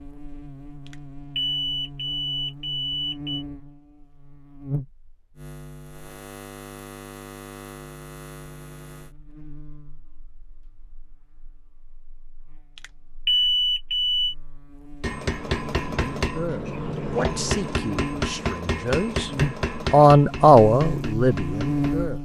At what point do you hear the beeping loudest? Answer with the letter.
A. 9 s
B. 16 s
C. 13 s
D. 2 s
C.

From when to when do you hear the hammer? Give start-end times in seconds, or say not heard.
15.0-21.9.